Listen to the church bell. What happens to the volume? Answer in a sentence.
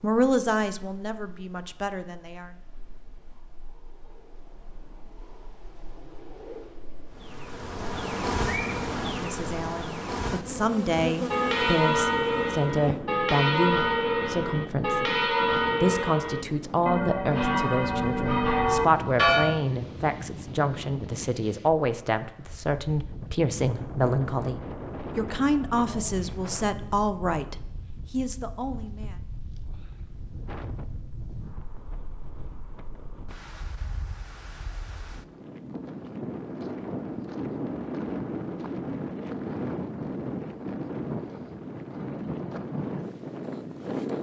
The volume of the church bell stays about the same.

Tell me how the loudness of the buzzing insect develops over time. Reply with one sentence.
The volume of the buzzing insect goes down.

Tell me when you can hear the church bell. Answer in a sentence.
The church bell can be heard from 11.1 to 19.6 s.